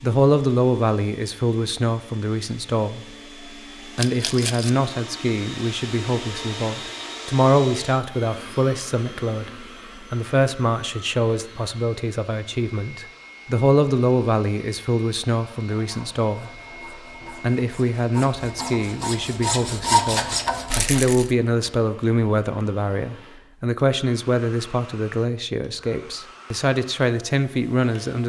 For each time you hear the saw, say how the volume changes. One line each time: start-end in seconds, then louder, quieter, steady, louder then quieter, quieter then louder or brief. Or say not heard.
15.6-21.0 louder.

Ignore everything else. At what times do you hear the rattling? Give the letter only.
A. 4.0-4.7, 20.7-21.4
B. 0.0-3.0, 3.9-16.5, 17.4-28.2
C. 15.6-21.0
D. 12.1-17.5
A.